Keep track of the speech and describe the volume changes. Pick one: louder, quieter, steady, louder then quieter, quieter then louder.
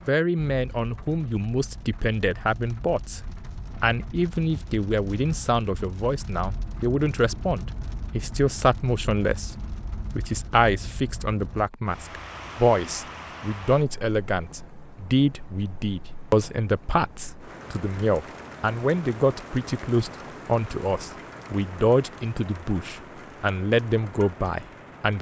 steady.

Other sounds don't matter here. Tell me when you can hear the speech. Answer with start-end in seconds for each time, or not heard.
0.1-3.2, 3.8-25.1.